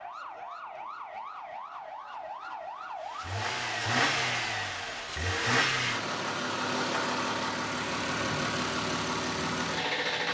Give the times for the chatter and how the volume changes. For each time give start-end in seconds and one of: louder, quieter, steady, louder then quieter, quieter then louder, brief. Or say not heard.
not heard.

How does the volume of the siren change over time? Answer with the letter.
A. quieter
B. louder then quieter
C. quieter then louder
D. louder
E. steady
E.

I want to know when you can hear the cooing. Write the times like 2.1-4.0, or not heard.
not heard.